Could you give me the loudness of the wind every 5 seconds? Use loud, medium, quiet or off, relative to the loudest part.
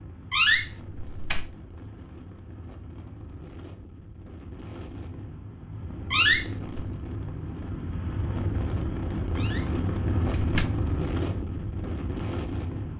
quiet, loud, loud.